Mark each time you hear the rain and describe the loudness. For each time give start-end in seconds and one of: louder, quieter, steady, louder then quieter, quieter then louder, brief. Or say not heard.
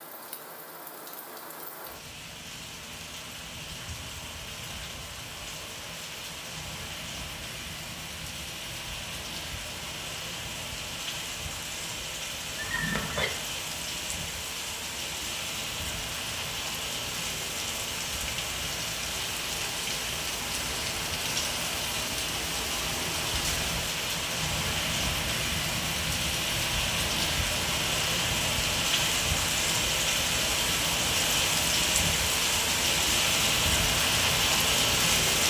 0.0-35.4 louder.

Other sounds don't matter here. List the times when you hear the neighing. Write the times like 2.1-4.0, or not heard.
12.6-13.3.